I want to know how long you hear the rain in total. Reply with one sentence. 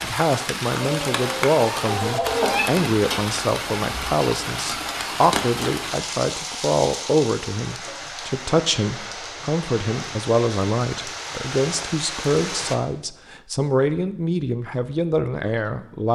The rain can be heard for 13 seconds in total.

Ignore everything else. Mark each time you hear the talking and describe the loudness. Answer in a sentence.
You can hear the talking from 0.0 to 16.0 s, at a steady volume.